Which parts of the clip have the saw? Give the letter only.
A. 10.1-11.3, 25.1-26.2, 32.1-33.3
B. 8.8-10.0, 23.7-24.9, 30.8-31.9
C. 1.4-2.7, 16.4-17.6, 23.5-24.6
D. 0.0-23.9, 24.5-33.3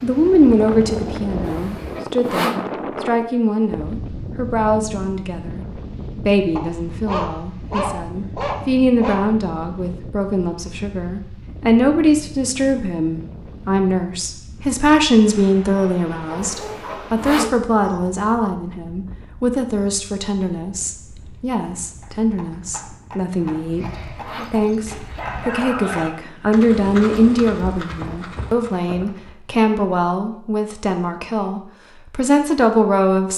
C.